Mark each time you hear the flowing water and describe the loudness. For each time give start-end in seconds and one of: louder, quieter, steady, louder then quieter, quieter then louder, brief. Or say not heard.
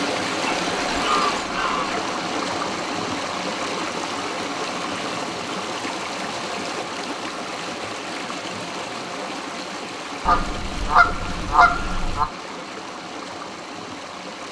0.0-14.4 quieter.